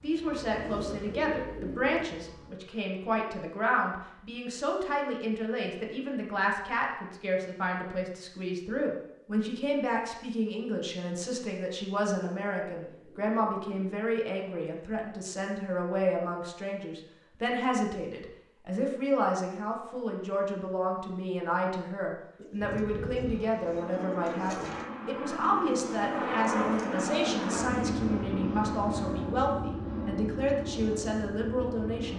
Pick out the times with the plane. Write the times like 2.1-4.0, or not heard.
0.0-2.5, 22.6-32.1.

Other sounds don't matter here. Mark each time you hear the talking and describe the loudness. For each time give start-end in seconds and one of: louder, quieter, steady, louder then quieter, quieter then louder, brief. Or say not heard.
0.0-32.1 steady.